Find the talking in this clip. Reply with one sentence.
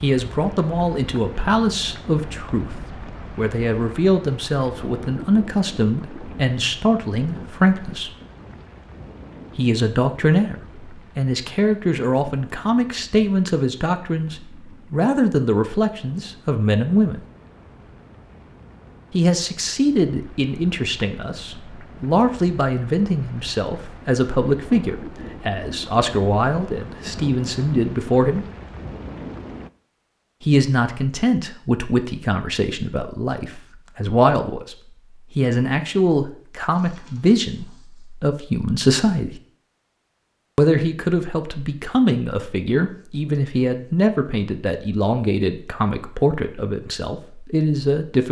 The talking can be heard from 0.0 to 8.1 s, from 9.6 to 17.2 s, from 19.1 to 28.4 s, from 30.4 to 34.8 s, from 35.4 to 39.4 s and from 40.5 to 48.2 s.